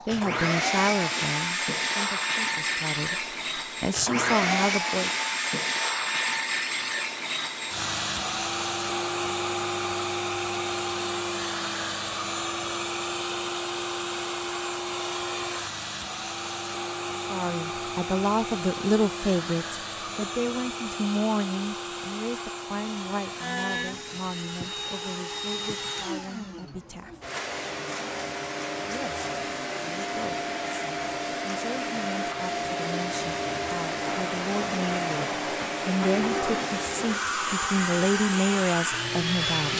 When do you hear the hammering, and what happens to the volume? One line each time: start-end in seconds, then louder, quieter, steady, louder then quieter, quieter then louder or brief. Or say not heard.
not heard.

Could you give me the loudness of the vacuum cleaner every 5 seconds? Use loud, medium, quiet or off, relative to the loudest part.
loud, loud, loud, medium, medium, medium, loud, loud.